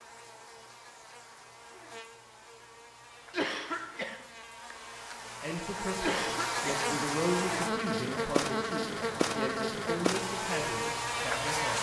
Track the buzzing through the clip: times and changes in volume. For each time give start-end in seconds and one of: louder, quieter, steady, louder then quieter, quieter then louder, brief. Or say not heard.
0.0-11.7 louder.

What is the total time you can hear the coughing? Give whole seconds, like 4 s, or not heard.
2 s.